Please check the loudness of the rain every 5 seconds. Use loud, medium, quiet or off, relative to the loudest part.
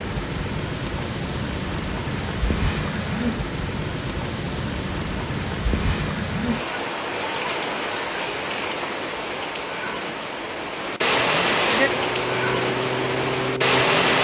medium, medium, loud.